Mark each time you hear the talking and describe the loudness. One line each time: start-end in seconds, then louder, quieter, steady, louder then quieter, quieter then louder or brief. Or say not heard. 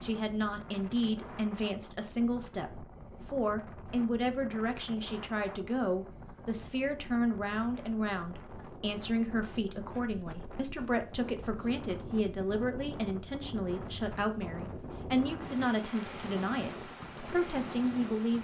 0.0-18.4 steady.